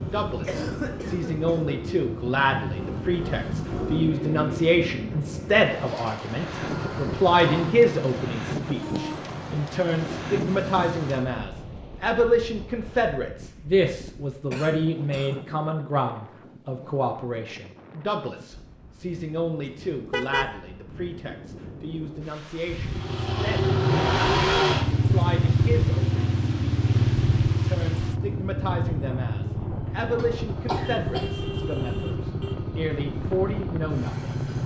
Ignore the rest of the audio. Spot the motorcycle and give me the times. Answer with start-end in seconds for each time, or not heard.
0.0-11.4, 22.9-34.6.